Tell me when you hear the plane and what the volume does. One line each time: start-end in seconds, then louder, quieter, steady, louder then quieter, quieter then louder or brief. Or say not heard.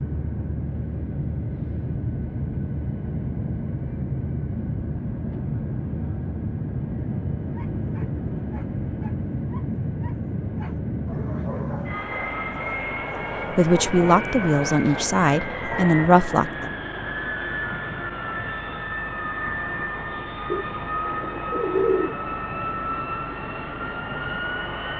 0.0-24.9 steady.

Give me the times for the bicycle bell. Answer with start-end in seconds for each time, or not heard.
not heard.